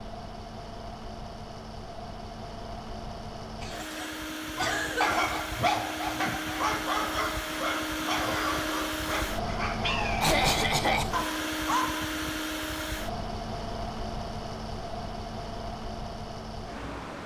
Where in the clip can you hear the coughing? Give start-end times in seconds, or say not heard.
3.6-5.4, 10.2-11.2.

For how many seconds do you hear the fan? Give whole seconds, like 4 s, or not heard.
17 s.